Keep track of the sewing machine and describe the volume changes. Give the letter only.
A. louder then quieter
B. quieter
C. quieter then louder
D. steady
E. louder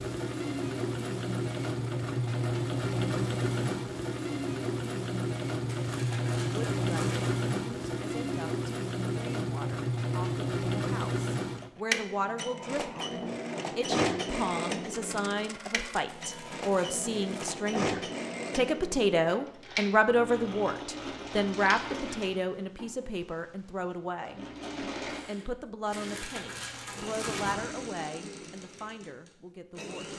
B.